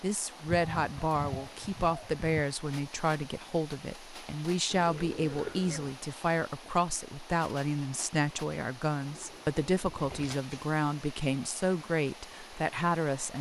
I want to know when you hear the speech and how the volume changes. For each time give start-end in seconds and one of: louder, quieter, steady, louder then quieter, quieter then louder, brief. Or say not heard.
0.0-13.3 steady.